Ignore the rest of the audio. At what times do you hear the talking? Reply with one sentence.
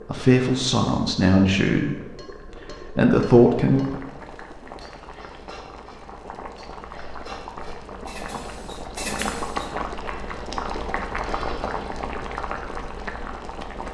The talking can be heard from 0.1 to 1.9 s and from 2.6 to 4.0 s.